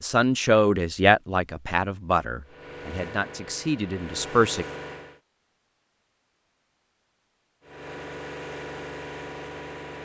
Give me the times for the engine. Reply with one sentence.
The engine can be heard from 2.4 to 5.2 s and from 7.6 to 9.9 s.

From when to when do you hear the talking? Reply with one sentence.
The talking can be heard from 0.0 to 4.7 s.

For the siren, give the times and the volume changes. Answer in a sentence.
You can't hear the siren here.